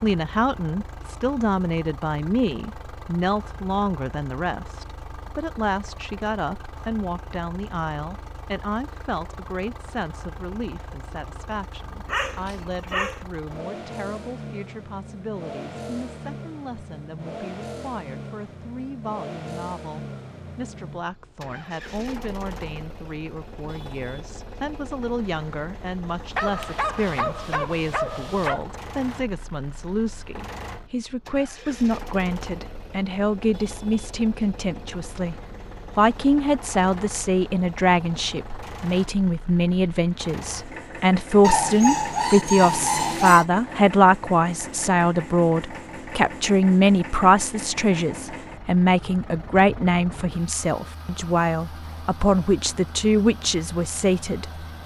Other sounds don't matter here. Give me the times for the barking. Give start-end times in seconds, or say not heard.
12.1-13.2, 26.4-28.6, 41.4-43.5.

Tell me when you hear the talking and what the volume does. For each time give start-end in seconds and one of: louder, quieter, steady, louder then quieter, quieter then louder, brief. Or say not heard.
0.0-54.5 quieter then louder.